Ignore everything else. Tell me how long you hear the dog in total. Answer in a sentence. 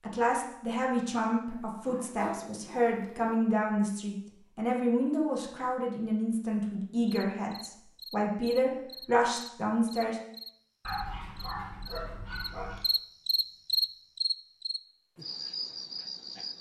The dog can be heard for 4 seconds in total.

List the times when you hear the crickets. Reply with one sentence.
You can hear the crickets from 7.0 to 16.5 s.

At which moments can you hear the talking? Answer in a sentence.
You can hear the talking from 0.0 to 10.2 s.